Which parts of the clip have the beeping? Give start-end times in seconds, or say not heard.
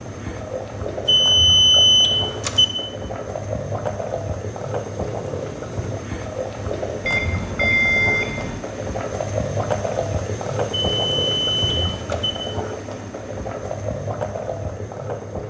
1.1-2.6, 7.0-8.6, 10.7-12.3.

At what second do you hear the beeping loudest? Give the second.
2 s.